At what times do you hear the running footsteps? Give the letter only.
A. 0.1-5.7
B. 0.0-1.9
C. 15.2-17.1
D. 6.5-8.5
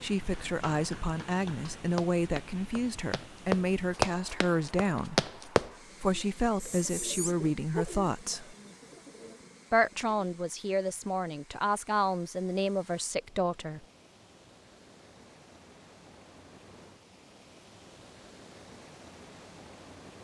A.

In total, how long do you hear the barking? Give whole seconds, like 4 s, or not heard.
2 s.